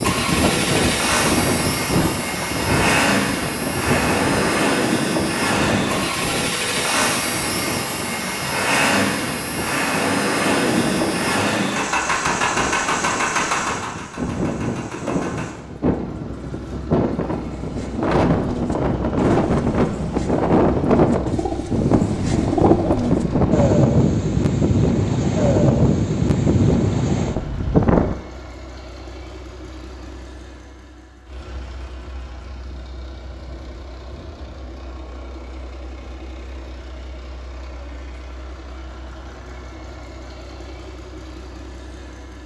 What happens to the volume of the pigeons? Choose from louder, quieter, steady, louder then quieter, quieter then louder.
louder.